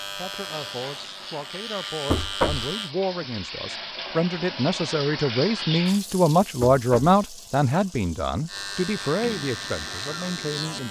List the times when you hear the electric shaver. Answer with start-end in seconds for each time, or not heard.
0.0-3.0, 8.4-10.8.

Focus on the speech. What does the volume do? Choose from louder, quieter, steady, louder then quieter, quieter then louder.
louder then quieter.